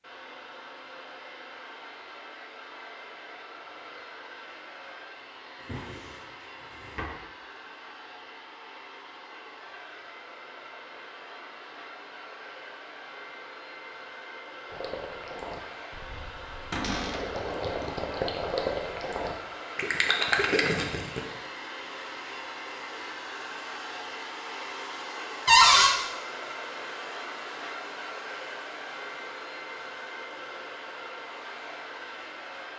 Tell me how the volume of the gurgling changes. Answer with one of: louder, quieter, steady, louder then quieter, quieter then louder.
louder.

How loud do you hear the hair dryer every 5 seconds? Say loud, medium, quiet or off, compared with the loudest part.
medium, medium, medium, loud, loud, loud, loud.